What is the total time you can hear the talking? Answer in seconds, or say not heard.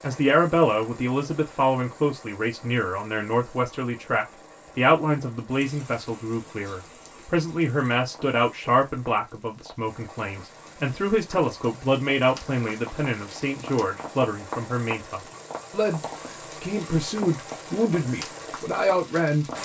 19 s.